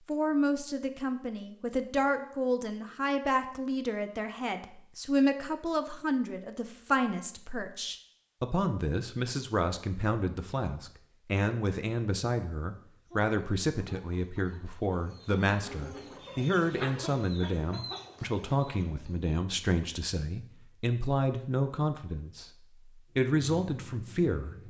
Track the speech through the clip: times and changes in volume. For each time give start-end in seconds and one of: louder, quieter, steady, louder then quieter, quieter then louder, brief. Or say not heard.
0.1-24.6 steady.